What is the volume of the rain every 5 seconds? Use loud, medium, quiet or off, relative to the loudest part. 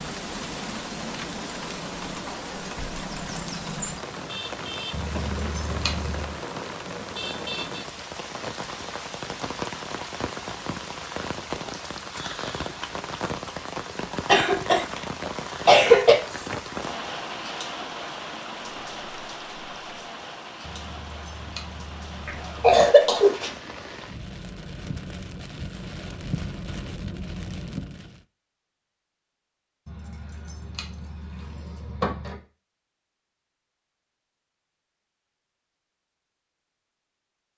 loud, loud, loud, loud, medium, loud, off, off.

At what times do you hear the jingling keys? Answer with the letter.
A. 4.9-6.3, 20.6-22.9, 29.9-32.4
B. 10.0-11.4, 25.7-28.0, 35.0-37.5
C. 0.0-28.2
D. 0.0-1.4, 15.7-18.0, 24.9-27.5
A.